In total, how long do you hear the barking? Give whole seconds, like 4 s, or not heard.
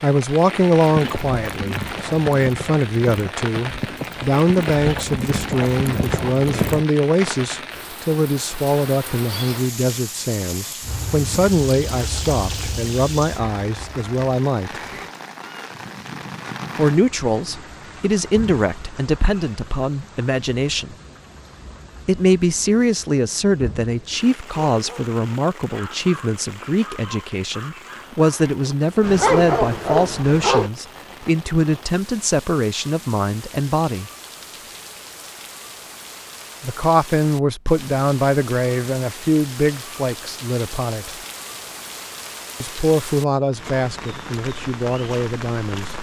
6 s.